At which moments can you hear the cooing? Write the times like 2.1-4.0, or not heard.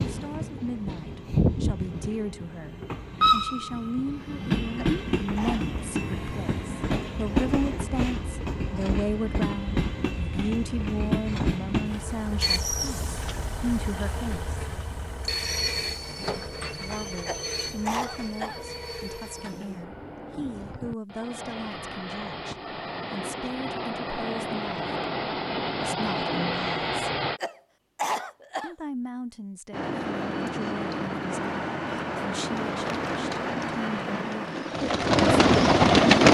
32.4-36.2.